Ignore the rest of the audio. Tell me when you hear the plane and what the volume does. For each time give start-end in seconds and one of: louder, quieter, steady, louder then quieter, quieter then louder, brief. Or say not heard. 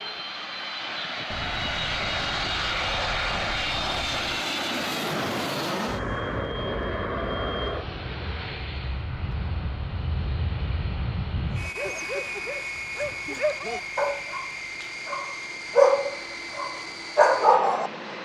0.0-18.2 quieter.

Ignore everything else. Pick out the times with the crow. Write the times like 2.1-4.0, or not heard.
not heard.